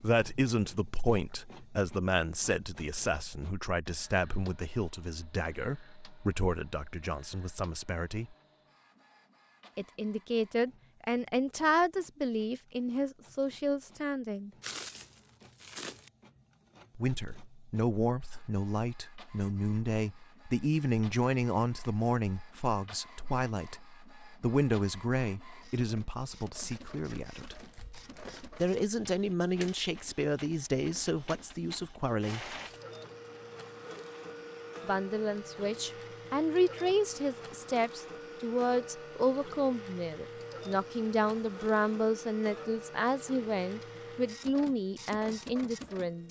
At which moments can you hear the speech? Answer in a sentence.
You can hear the speech from 0.0 to 8.3 s, from 9.8 to 14.5 s, from 16.9 to 27.6 s, from 28.6 to 32.5 s and from 34.8 to 46.2 s.